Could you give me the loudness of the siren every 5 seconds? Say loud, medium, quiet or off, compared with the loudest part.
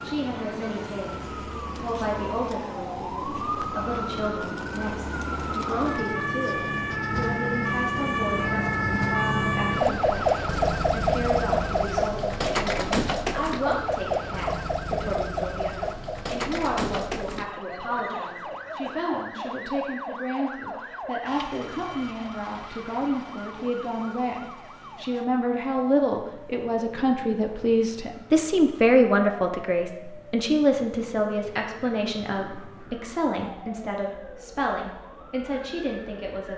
medium, loud, loud, medium, quiet, quiet, quiet, quiet.